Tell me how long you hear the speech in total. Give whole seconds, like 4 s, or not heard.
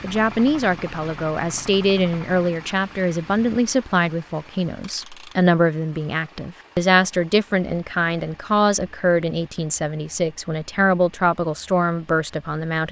13 s.